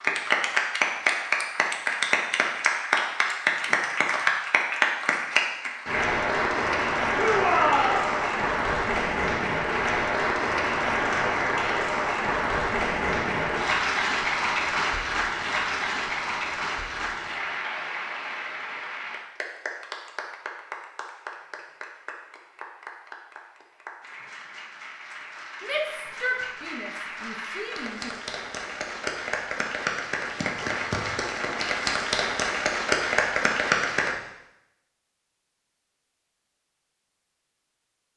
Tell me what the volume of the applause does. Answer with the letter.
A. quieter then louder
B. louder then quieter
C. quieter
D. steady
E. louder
A.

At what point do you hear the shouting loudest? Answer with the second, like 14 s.
8 s.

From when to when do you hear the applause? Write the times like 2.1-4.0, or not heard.
0.0-34.1.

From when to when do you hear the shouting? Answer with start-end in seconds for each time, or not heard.
7.2-8.1, 25.6-28.1.